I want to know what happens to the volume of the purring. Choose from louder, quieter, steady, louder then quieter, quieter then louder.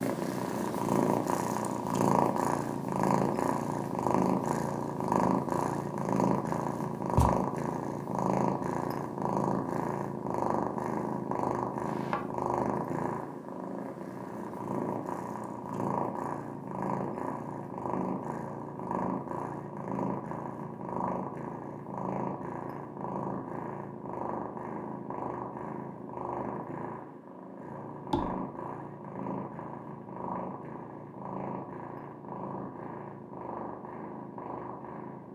quieter.